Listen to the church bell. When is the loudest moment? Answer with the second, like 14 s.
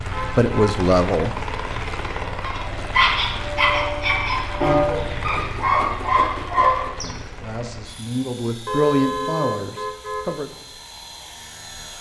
5 s.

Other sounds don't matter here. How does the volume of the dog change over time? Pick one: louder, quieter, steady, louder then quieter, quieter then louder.
quieter then louder.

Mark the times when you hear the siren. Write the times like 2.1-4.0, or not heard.
not heard.